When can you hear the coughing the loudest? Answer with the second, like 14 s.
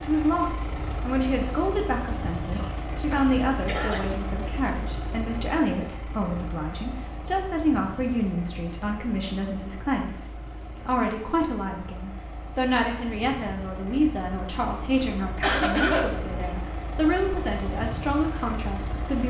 16 s.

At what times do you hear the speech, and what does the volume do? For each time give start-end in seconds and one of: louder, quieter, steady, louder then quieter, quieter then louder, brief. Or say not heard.
0.0-19.2 steady.